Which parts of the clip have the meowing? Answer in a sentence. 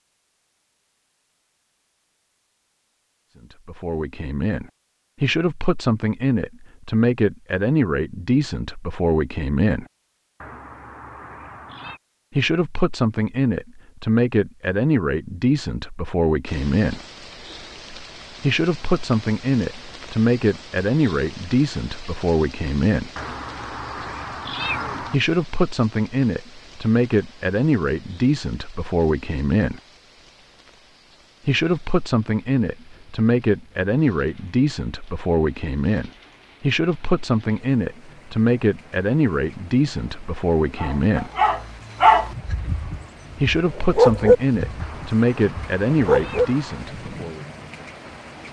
You can hear the meowing from 10.4 to 12.0 s, from 23.1 to 25.1 s and from 44.8 to 46.8 s.